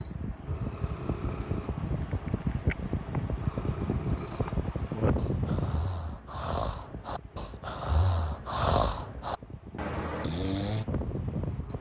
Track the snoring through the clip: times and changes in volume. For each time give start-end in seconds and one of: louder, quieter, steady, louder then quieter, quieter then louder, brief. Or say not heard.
0.5-10.8 louder.